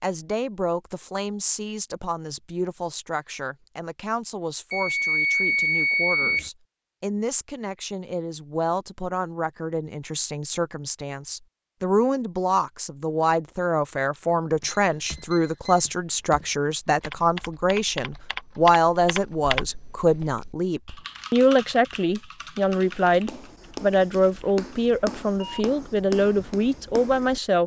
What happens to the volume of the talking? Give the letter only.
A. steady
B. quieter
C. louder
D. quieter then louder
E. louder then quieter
C.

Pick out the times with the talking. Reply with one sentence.
You can hear the talking from 0.0 to 27.6 s.